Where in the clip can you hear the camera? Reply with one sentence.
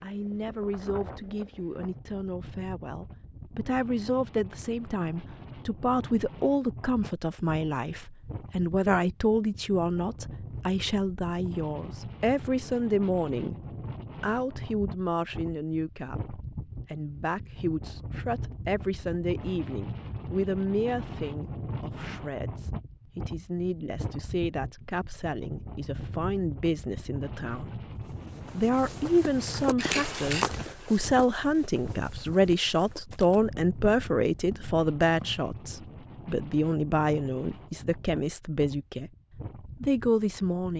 The camera can be heard from 29.8 to 30.4 s.